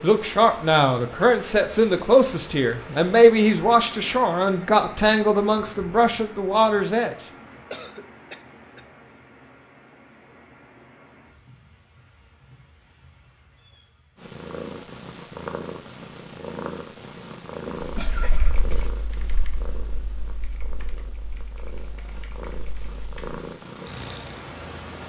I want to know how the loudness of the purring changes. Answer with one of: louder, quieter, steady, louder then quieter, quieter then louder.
quieter then louder.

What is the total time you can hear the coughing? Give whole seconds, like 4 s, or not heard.
2 s.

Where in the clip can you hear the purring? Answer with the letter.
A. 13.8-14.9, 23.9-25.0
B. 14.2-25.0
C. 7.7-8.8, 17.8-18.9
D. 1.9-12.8
B.